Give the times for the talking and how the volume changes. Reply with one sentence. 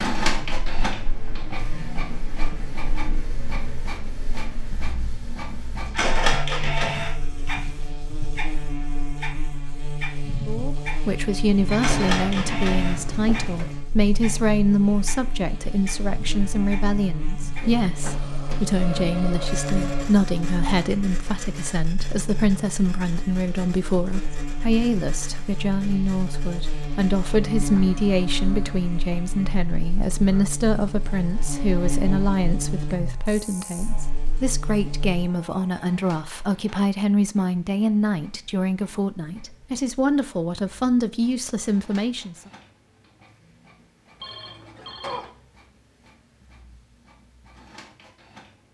The talking can be heard from 10.4 to 42.5 s, at a steady volume.